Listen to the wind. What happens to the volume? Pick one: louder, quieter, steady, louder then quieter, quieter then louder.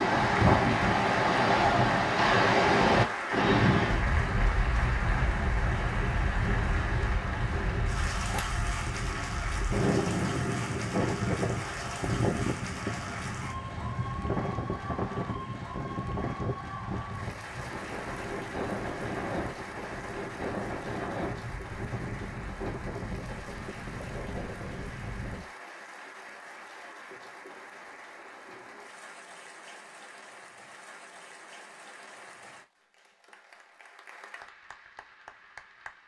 quieter.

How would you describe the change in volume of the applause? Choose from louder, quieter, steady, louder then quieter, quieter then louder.
quieter.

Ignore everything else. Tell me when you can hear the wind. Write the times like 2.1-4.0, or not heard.
0.0-25.4.